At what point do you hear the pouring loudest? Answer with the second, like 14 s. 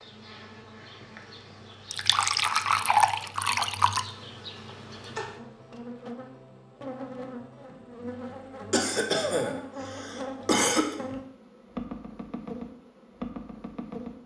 3 s.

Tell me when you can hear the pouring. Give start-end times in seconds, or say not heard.
1.9-4.1.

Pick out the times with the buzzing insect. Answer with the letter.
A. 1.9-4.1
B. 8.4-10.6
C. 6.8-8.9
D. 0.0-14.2
D.